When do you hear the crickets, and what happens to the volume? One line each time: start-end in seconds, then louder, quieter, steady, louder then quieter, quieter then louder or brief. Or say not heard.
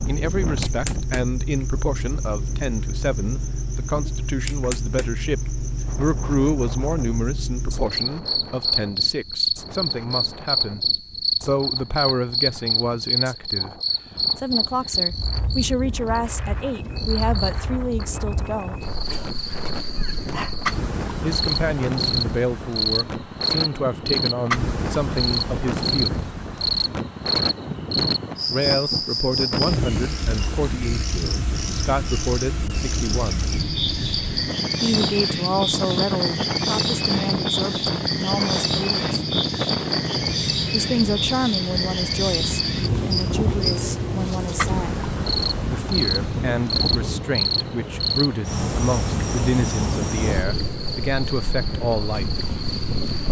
0.0-53.2 steady.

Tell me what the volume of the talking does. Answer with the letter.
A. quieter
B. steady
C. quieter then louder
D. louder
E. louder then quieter
B.